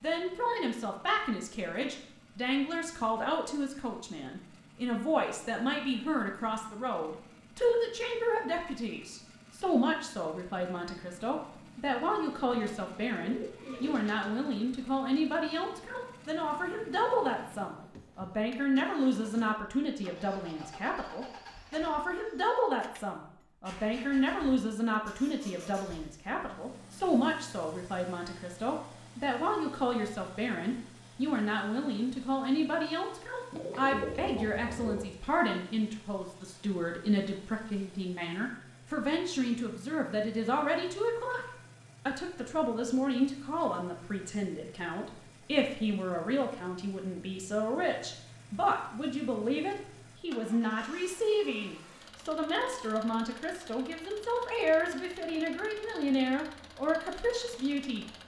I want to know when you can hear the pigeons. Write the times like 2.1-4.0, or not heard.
12.4-14.3, 33.5-35.0.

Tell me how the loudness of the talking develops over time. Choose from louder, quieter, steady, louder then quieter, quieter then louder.
steady.